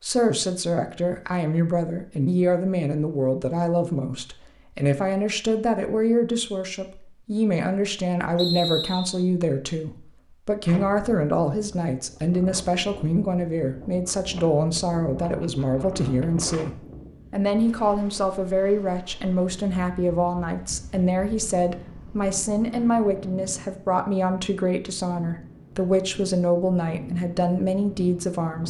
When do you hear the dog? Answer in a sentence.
You can't hear the dog here.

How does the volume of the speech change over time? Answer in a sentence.
The volume of the speech stays about the same.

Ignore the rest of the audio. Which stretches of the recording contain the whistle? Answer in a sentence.
You can hear the whistle from 8.3 to 9.2 s.